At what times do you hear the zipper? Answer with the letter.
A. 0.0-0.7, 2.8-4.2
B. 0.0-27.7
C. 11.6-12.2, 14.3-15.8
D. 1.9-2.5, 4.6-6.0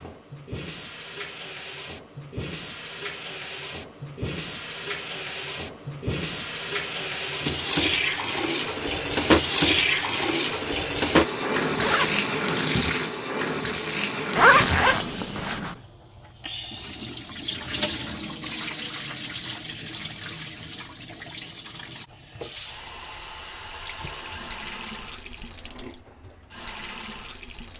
C.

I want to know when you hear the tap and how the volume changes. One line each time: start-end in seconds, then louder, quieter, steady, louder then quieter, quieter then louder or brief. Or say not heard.
0.0-27.7 louder then quieter.